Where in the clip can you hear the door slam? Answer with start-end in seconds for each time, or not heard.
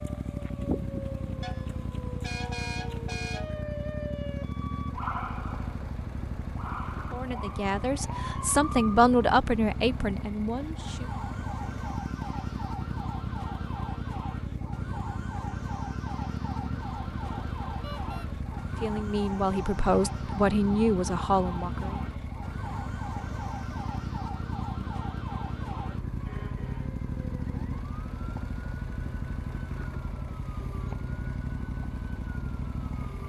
not heard.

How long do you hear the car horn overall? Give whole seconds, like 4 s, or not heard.
3 s.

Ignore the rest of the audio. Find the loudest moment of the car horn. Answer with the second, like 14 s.
3 s.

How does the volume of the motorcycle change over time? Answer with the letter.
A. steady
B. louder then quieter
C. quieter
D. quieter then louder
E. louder
A.